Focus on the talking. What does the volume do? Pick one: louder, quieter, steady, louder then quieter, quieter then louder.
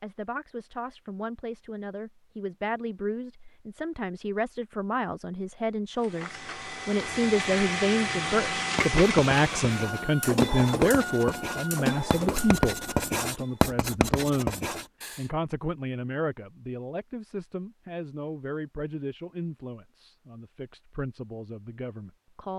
louder then quieter.